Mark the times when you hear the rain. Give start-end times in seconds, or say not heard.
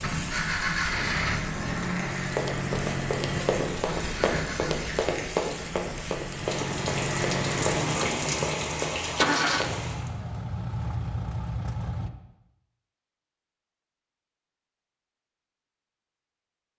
0.0-10.1.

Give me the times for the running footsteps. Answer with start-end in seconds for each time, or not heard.
2.2-9.8.